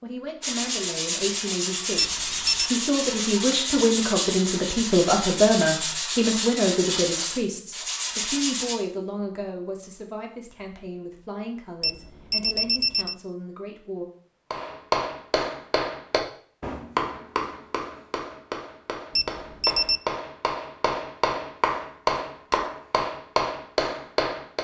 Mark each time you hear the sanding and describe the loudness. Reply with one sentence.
You can hear the sanding from 0.4 to 8.8 s, at a steady volume.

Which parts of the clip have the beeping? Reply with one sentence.
You can hear the beeping from 1.9 to 2.8 s, from 11.8 to 13.2 s and from 19.1 to 20.0 s.